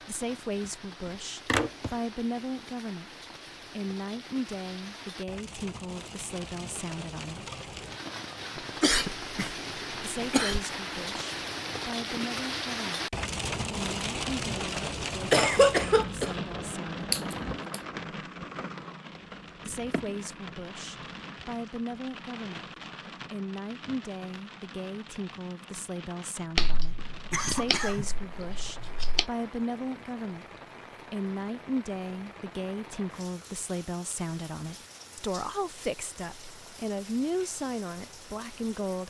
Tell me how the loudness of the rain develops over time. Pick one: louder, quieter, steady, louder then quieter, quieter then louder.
louder then quieter.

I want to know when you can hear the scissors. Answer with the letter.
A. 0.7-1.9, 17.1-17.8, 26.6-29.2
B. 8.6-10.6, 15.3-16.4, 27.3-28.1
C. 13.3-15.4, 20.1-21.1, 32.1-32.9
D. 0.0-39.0
A.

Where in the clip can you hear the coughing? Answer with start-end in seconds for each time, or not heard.
8.6-10.6, 15.3-16.4, 27.3-28.1.